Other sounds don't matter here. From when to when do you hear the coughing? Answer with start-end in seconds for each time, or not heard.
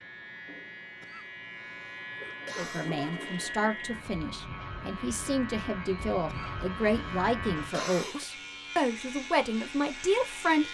1.0-3.0, 6.2-8.2.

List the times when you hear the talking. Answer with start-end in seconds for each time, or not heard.
2.5-10.6.